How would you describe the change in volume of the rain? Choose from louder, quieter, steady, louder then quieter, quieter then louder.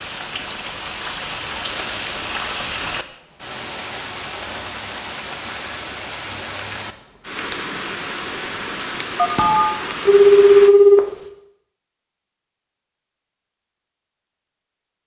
steady.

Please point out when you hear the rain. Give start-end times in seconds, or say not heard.
0.0-10.7.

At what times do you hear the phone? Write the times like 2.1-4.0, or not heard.
9.2-11.0.